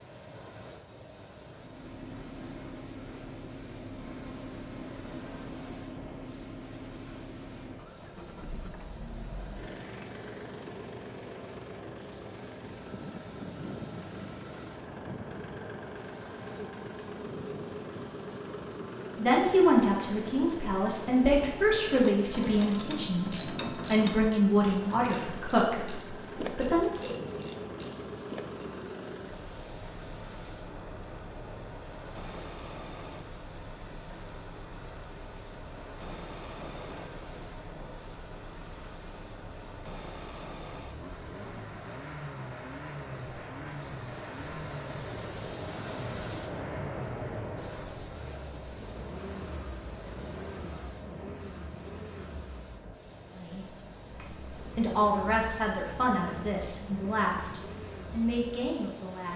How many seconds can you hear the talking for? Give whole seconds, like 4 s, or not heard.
14 s.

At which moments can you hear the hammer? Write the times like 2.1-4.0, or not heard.
not heard.